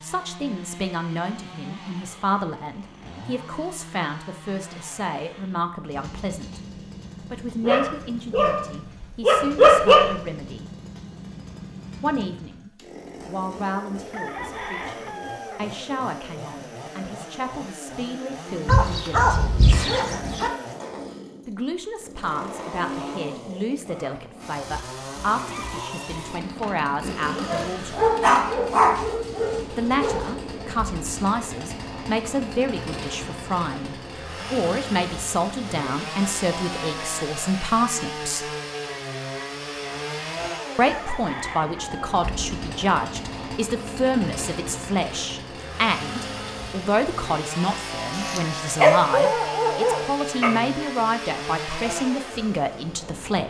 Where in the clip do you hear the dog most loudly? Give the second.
10 s.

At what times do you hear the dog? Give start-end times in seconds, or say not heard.
7.6-10.2, 18.6-20.5, 27.4-30.3, 48.1-50.5.